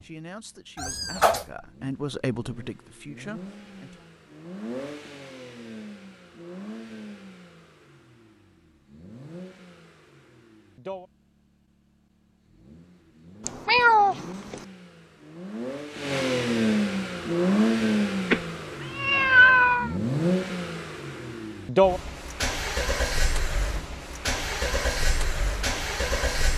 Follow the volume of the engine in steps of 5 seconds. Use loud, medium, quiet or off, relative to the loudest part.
quiet, quiet, quiet, loud, loud, loud.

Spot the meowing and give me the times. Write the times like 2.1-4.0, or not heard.
0.8-1.4, 13.4-14.6, 18.3-19.9.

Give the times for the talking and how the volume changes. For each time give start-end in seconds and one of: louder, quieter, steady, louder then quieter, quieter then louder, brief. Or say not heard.
0.0-4.1 louder then quieter.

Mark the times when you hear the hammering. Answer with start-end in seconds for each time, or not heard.
not heard.